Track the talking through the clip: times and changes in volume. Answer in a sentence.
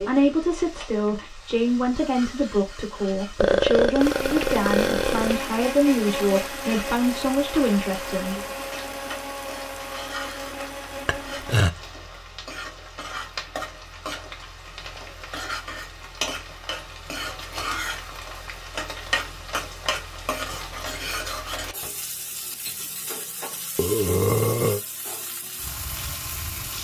You can hear the talking from 0.0 to 8.4 s, at a steady volume.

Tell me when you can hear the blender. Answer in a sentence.
You can hear the blender from 4.0 to 11.7 s.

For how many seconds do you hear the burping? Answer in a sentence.
The burping can be heard for 4 seconds in total.